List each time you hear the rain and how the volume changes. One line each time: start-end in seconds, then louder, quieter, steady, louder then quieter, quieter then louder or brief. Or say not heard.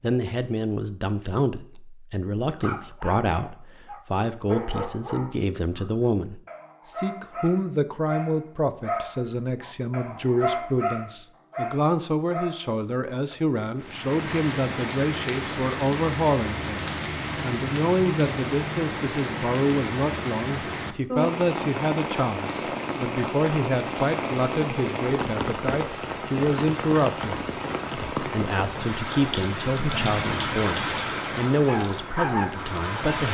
13.8-33.3 steady.